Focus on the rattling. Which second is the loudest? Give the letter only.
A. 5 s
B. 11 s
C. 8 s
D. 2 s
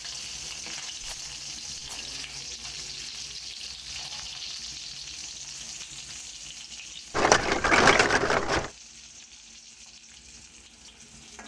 C.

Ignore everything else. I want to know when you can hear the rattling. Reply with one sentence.
The rattling can be heard from 1.0 to 2.1 s and from 7.1 to 8.7 s.